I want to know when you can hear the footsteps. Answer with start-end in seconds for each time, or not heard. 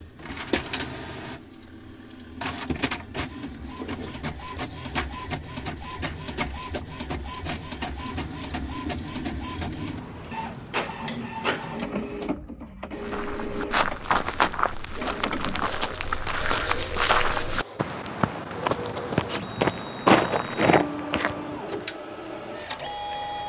13.0-21.9.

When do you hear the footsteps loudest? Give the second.
20 s.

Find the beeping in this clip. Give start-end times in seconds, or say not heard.
not heard.